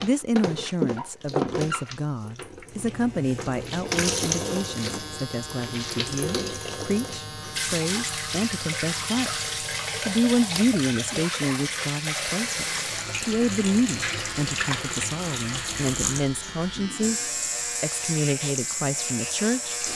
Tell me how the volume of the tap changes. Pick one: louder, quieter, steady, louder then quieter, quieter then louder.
steady.